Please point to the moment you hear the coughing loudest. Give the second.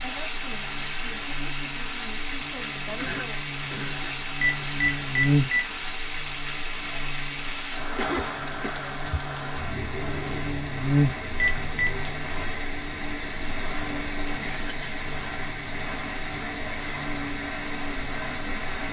8 s.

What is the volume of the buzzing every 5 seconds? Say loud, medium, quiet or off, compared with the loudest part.
medium, loud, loud, medium.